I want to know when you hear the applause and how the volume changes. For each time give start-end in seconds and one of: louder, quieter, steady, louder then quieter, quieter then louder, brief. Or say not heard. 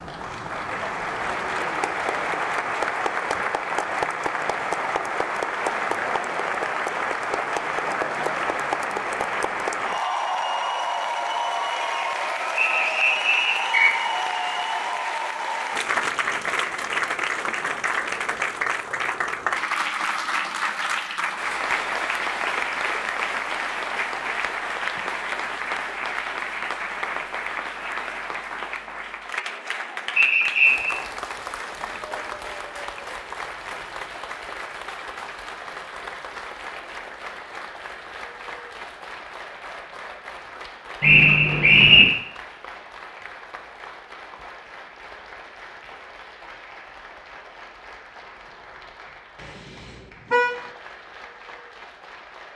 0.0-52.5 quieter.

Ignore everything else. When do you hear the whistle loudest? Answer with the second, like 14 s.
42 s.